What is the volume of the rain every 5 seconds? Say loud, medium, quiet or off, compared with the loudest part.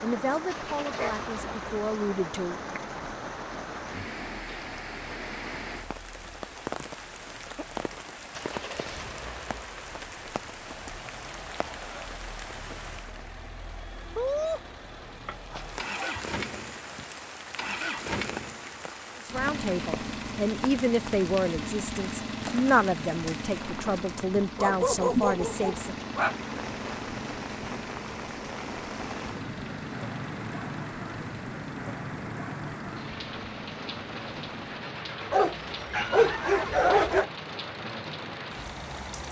loud, loud, loud, medium, medium, loud, loud, loud.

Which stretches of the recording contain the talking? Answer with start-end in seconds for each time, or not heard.
0.0-2.8, 19.2-26.1.